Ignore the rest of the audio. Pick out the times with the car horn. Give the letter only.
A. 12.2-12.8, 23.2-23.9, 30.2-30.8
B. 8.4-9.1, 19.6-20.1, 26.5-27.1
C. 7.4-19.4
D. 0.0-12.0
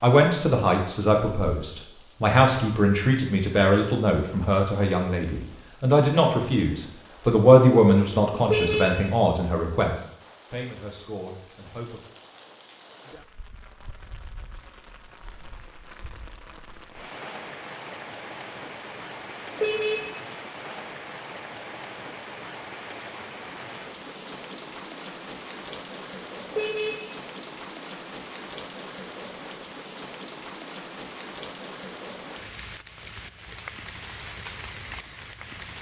B.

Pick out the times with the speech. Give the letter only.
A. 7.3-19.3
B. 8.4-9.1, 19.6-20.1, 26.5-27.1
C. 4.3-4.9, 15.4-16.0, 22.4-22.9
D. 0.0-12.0
D.